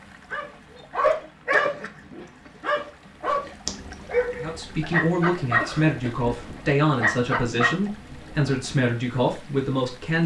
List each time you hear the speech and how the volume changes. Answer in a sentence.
The speech can be heard from 4.3 to 10.2 s, at a steady volume.